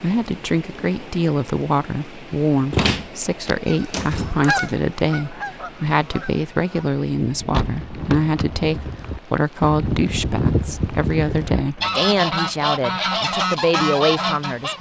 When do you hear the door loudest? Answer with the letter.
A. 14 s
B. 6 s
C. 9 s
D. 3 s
D.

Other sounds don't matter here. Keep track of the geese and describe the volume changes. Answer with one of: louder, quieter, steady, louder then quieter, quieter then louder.
quieter then louder.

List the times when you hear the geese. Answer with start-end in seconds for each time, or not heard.
3.6-14.7.